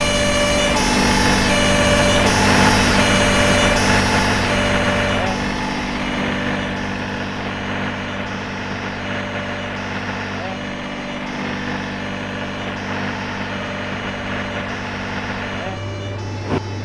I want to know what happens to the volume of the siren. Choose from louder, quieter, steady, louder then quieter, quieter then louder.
quieter.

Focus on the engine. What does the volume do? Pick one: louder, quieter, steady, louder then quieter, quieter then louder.
quieter.